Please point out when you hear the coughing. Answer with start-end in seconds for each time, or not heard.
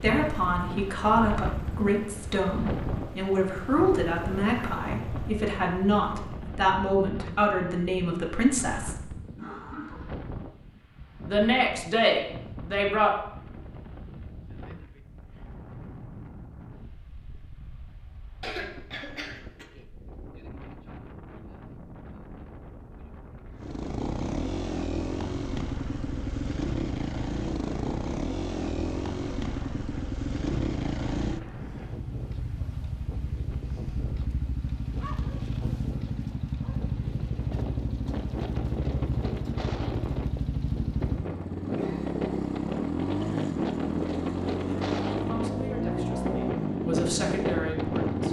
8.6-10.1, 18.4-19.6, 41.7-42.2.